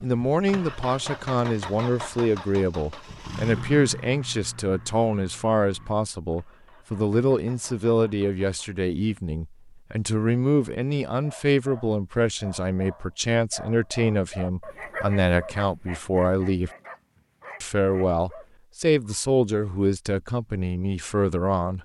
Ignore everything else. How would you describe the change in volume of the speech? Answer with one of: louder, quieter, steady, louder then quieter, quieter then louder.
steady.